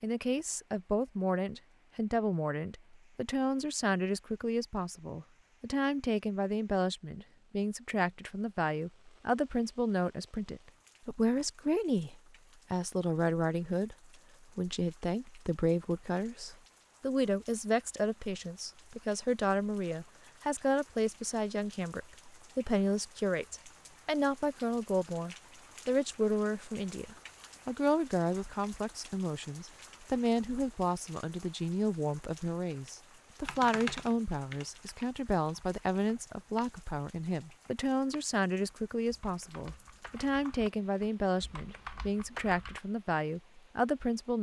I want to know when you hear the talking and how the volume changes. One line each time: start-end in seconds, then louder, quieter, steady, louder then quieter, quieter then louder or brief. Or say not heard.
0.0-13.9 steady
14.6-44.3 steady.